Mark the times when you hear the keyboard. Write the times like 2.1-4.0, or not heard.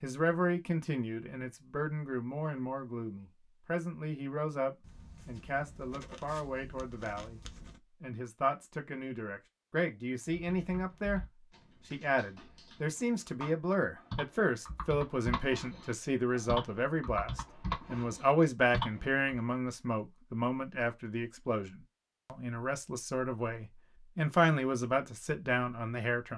10.3-19.4.